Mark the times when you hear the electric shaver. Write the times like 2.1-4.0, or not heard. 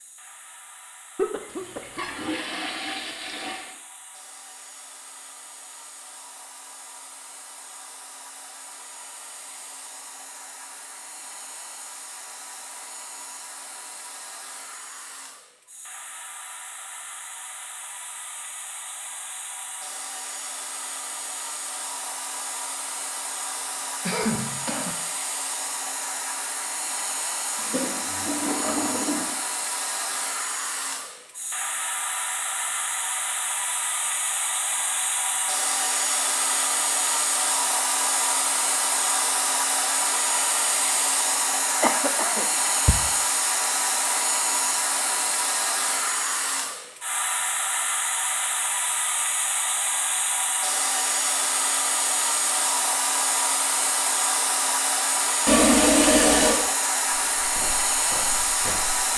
not heard.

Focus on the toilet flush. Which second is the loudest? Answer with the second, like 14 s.
56 s.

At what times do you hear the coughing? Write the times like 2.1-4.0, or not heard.
1.1-2.0, 23.6-24.9, 41.8-43.0.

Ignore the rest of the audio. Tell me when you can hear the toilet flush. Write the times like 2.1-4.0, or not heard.
1.4-3.8, 27.6-29.4, 55.5-56.6.